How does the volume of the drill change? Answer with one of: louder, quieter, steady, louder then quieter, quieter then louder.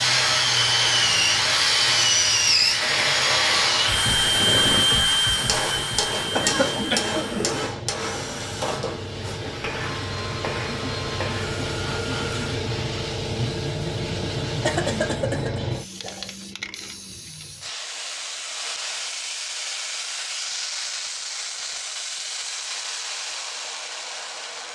quieter.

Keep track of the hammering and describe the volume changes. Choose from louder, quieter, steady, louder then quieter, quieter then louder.
quieter.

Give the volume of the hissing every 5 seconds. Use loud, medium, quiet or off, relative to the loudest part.
quiet, medium, loud, loud, loud.